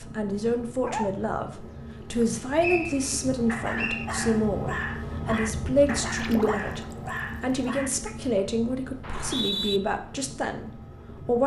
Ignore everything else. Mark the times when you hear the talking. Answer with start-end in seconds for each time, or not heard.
0.0-11.4.